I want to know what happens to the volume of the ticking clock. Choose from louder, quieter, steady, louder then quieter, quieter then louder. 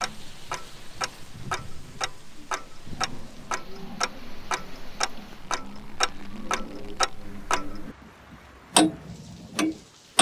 louder.